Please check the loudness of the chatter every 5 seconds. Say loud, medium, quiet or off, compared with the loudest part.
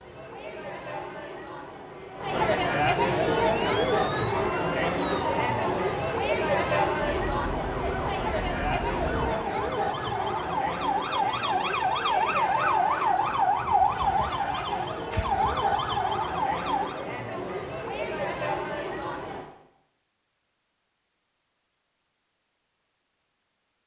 loud, loud, medium, medium, off.